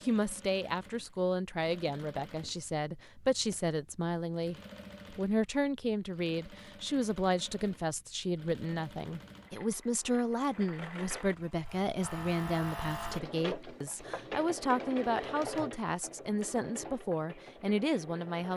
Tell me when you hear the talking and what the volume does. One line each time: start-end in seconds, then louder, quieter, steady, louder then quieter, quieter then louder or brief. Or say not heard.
0.0-18.5 steady.